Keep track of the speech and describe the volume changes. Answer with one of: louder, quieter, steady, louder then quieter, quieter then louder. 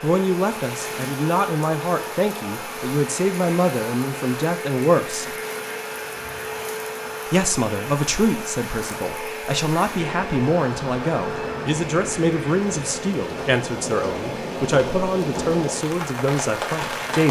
steady.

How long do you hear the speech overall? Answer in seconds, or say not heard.
15 s.